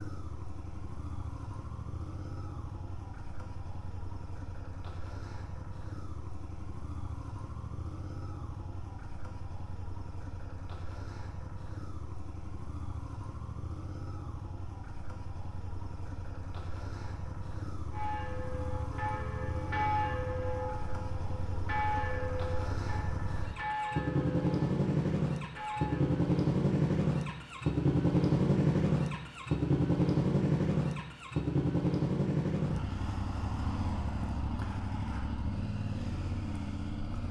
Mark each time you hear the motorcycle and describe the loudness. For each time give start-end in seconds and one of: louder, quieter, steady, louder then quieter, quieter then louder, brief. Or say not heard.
0.0-37.2 louder.